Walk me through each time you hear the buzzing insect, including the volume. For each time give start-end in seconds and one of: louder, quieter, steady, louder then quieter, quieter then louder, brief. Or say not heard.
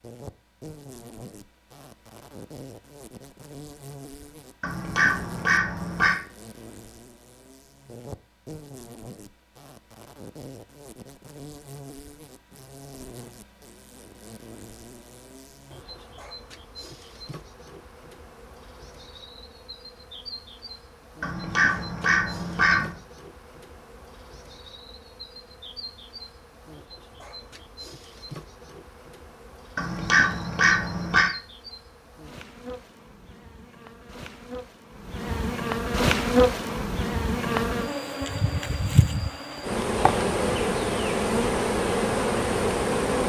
0.0-43.2 louder.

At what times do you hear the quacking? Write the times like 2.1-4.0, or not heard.
4.6-6.2, 21.2-22.9, 29.8-31.3.